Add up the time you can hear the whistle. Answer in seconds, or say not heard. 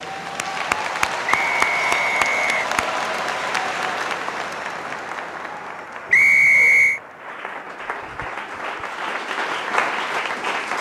2 s.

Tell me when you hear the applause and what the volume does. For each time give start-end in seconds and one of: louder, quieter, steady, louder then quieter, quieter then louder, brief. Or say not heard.
0.0-10.7 quieter then louder.